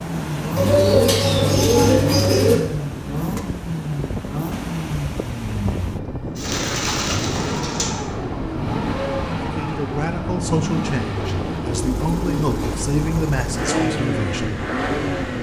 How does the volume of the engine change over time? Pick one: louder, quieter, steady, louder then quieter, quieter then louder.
steady.